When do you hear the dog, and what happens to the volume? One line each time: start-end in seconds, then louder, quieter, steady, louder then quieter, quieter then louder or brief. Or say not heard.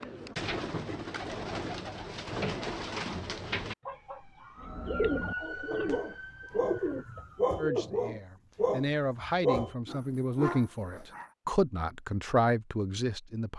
4.5-11.3 louder then quieter.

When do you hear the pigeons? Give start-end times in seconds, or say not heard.
0.0-7.8.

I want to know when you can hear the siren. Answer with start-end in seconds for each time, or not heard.
3.9-7.5.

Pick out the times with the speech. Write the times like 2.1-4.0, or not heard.
7.5-13.5.